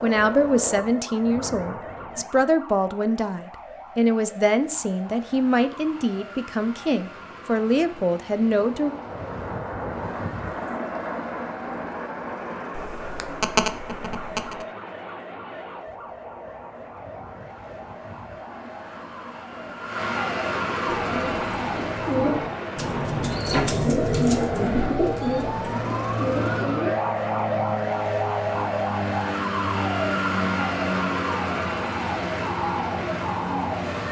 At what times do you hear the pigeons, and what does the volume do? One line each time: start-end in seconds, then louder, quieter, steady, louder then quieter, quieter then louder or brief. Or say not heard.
20.9-26.6 louder then quieter.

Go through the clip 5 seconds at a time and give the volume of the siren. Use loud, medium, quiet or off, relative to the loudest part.
quiet, quiet, quiet, quiet, loud, loud, loud.